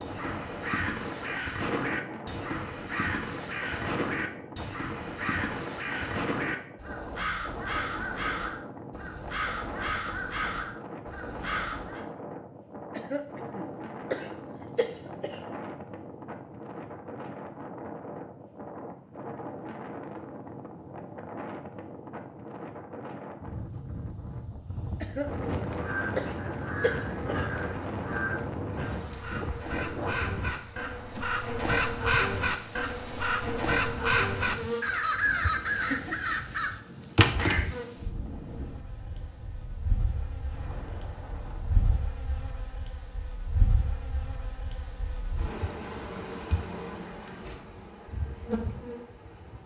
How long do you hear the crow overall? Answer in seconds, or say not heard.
24 s.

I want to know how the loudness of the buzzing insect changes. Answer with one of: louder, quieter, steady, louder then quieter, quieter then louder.
louder.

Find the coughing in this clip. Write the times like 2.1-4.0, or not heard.
12.9-15.6, 25.0-27.5.